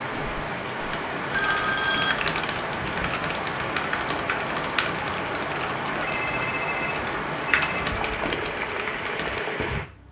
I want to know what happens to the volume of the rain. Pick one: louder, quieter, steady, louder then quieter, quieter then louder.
steady.